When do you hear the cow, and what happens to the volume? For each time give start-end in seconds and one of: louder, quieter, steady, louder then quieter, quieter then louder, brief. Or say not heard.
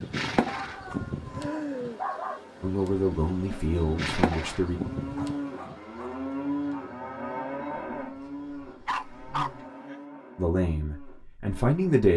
1.5-12.1 louder then quieter.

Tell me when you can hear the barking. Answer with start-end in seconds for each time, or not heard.
0.5-2.4, 4.4-6.2, 8.8-9.9.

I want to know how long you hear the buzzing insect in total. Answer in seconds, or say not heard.
10 s.